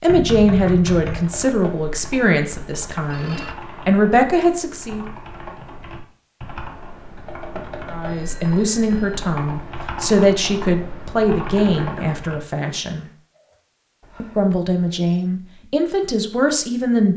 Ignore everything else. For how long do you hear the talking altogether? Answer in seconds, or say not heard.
13 s.